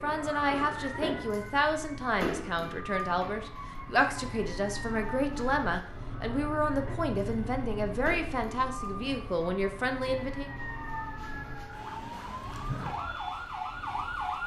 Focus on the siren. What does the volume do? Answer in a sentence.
The volume of the siren goes down, then up.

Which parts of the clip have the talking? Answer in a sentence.
You can hear the talking from 0.0 to 10.5 s.